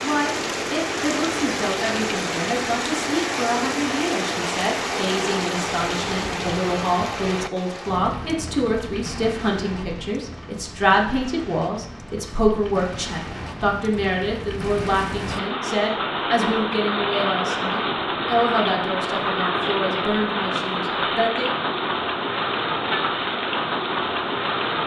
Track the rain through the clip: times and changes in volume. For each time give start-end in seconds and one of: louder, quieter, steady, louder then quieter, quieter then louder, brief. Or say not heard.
0.0-24.8 quieter then louder.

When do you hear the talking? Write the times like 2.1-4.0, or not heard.
0.0-21.6.